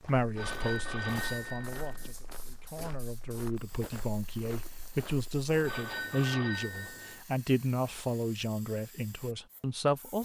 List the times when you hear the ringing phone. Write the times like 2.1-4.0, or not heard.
0.3-2.1, 5.6-7.2.